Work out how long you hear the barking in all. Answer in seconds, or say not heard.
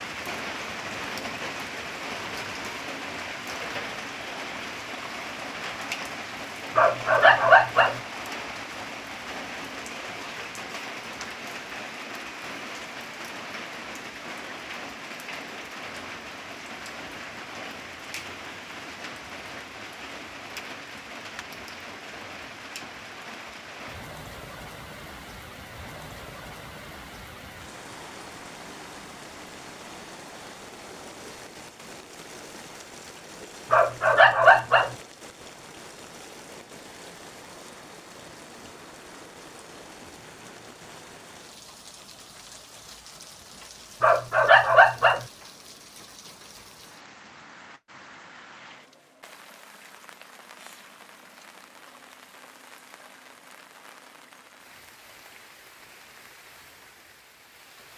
4 s.